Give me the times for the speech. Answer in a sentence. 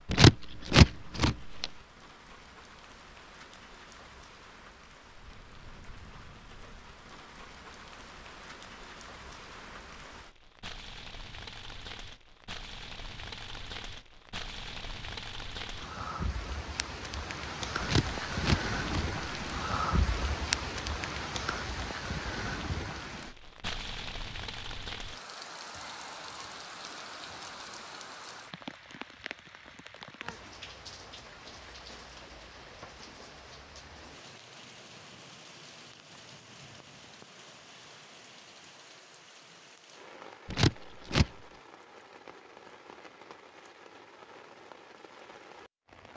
The speech can't be heard in this clip.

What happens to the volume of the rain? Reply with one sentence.
The loudness of the rain goes up, then down.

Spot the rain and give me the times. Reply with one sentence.
The rain can be heard from 0.0 to 46.1 s.